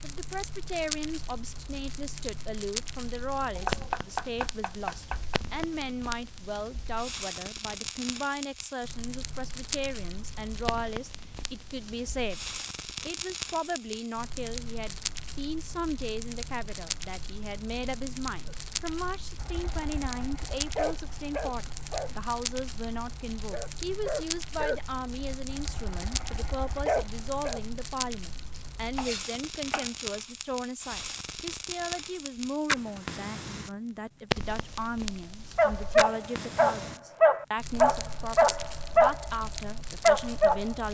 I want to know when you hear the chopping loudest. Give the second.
4 s.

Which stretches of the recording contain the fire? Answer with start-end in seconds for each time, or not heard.
0.0-40.8.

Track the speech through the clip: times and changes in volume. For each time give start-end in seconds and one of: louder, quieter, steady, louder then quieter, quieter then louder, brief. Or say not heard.
0.0-40.8 steady.